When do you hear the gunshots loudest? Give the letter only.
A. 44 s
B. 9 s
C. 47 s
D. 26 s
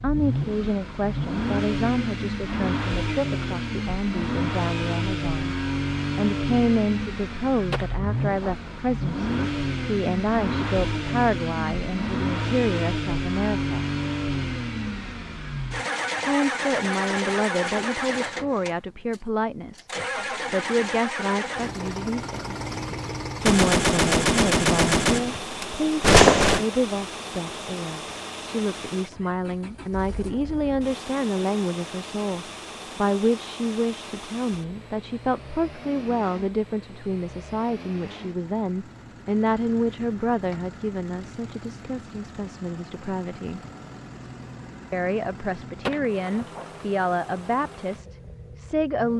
D.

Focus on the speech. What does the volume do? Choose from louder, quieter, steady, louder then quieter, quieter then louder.
steady.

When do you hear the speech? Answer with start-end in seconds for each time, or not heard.
0.0-5.5, 6.2-13.8, 16.2-22.6, 23.4-43.6, 44.9-49.1.